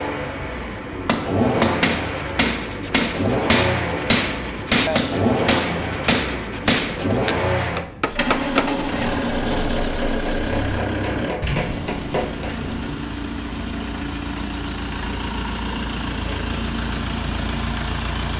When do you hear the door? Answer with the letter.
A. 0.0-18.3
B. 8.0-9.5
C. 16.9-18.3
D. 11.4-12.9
D.